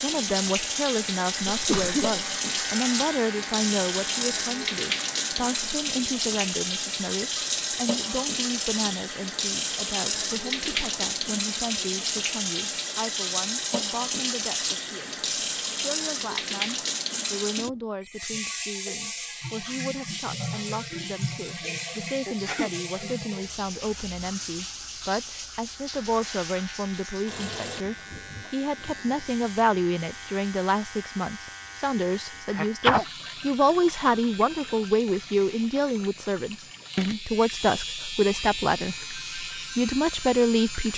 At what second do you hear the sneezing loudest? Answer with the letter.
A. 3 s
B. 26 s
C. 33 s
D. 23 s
C.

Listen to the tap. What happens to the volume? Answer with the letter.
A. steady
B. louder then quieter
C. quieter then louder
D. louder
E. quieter
E.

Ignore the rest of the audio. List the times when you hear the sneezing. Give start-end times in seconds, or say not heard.
1.5-2.2, 22.2-22.8, 32.5-33.0.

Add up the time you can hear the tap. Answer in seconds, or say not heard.
41 s.